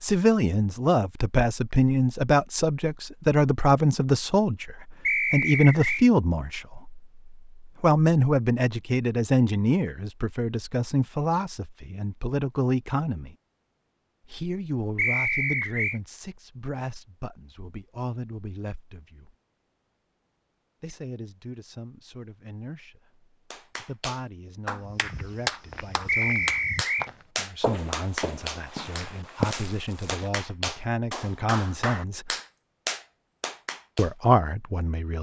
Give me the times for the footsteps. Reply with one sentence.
You can hear the footsteps from 24.8 to 30.3 s.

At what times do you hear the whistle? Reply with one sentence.
The whistle can be heard from 5.0 to 6.0 s, from 14.9 to 16.0 s and from 26.1 to 27.1 s.